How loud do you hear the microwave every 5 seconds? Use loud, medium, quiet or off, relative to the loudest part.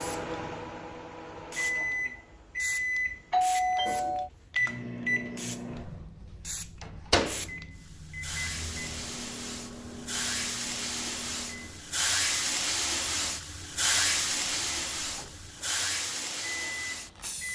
loud, loud, quiet, medium.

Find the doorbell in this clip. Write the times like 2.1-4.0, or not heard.
3.3-4.3.